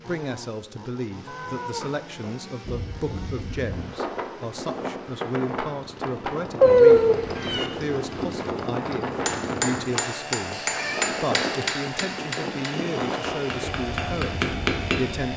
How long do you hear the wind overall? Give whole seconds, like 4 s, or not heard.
13 s.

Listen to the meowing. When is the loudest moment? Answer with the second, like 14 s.
7 s.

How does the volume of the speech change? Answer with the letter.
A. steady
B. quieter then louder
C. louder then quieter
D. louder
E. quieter
A.